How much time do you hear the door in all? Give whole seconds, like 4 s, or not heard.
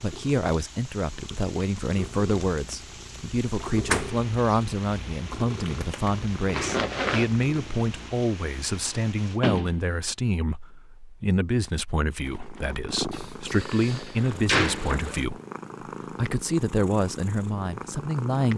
3 s.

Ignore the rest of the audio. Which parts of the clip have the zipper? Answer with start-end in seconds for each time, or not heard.
6.5-7.3, 13.8-15.3.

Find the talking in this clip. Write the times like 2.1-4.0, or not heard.
0.0-15.4, 16.1-18.5.